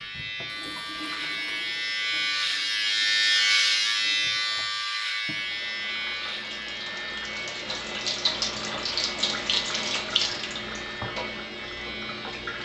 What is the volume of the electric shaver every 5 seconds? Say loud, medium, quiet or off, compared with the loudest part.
loud, medium, quiet.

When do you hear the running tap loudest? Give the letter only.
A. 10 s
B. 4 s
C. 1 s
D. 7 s
A.